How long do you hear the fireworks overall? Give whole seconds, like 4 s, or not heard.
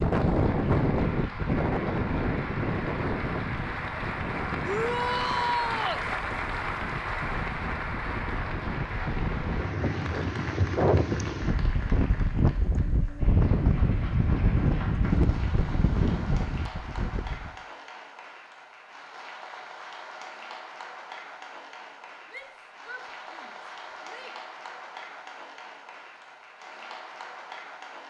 not heard.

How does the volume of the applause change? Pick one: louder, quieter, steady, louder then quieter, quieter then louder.
quieter.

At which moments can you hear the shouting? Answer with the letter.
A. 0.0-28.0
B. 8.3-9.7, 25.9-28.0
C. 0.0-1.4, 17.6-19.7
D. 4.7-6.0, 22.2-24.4
D.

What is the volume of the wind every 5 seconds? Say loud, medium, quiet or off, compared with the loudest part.
loud, medium, loud, loud, off, off.